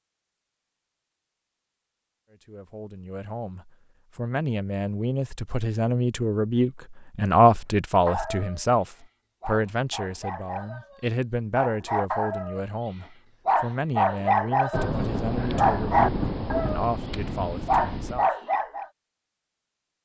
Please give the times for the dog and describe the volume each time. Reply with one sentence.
The dog can be heard from 8.1 to 18.9 s, getting louder.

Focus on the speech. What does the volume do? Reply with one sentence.
The volume of the speech goes up, then down.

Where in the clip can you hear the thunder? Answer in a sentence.
The thunder can be heard from 14.7 to 18.2 s.